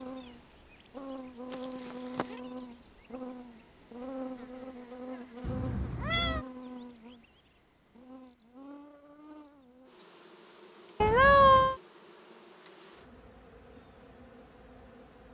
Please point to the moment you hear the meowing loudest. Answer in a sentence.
The loudest moment of the meowing is at 11 seconds.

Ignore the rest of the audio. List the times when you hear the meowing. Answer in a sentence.
You can hear the meowing from 1.5 to 2.4 s, from 5.4 to 6.5 s and from 11.0 to 11.8 s.